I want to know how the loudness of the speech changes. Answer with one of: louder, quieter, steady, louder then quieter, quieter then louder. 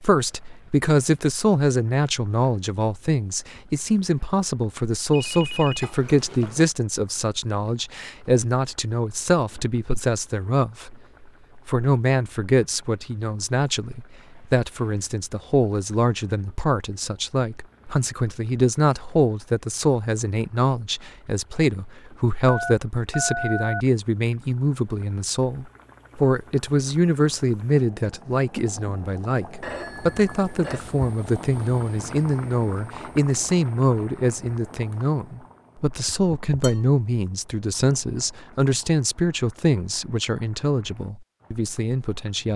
steady.